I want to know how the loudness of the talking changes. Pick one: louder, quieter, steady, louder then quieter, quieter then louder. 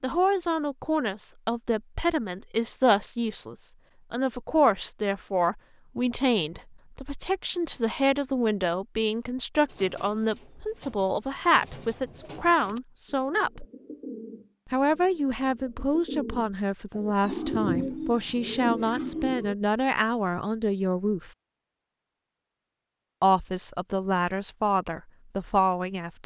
steady.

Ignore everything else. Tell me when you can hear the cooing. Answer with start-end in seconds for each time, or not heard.
9.7-19.6.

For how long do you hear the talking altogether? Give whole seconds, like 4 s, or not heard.
23 s.